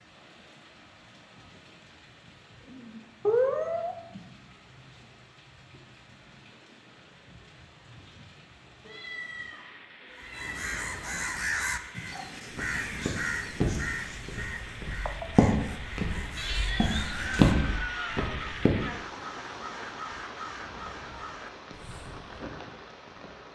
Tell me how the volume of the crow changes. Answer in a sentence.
The loudness of the crow goes down.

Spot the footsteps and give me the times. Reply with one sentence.
You can hear the footsteps from 12.5 to 18.9 s.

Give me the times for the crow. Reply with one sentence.
The crow can be heard from 10.1 to 22.4 s.